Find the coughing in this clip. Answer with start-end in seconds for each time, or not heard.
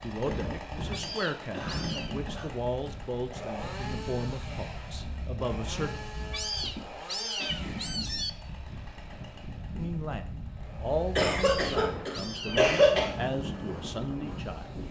0.2-2.5, 6.5-7.6, 11.2-13.1.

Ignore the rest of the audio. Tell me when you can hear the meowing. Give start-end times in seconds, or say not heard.
0.9-2.1, 6.3-8.3, 11.3-12.7.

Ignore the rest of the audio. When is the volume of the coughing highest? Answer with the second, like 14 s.
13 s.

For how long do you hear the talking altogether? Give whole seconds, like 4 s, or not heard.
11 s.